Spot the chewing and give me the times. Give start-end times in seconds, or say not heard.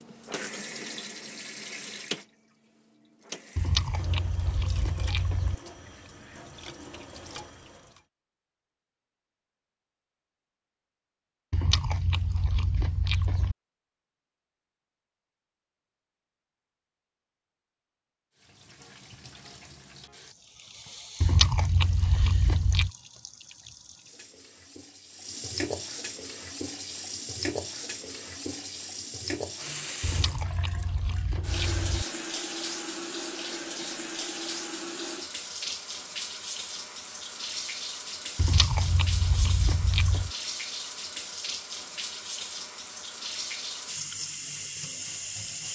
3.5-5.5, 11.5-13.6, 21.2-22.9, 30.0-32.0, 38.4-40.3.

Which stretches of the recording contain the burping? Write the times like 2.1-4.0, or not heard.
not heard.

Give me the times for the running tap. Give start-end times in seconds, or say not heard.
0.0-8.1, 18.4-45.7.